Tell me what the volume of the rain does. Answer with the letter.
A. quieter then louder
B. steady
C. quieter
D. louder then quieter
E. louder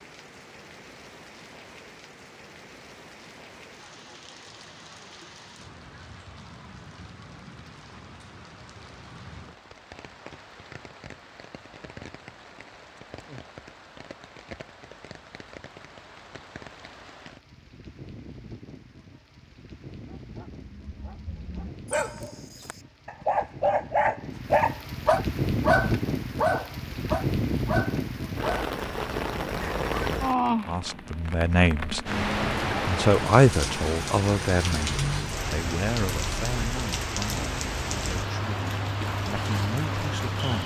E.